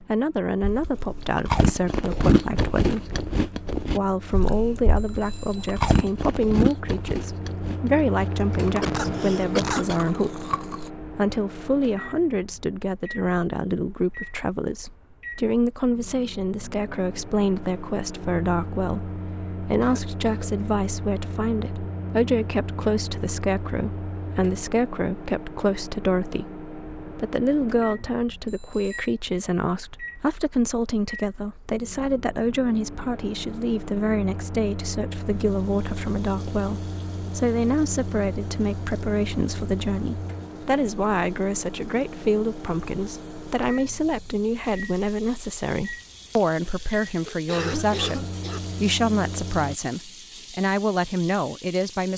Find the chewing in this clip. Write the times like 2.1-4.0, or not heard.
0.6-10.9.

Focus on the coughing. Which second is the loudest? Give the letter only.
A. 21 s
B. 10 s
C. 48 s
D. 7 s
B.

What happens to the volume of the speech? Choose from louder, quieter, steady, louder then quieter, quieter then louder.
steady.